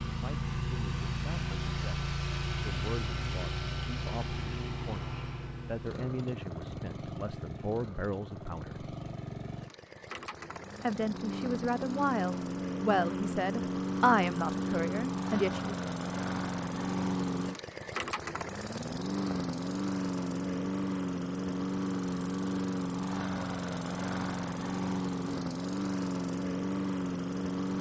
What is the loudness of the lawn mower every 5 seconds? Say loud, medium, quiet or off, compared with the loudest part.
loud, medium, loud, loud, loud, loud.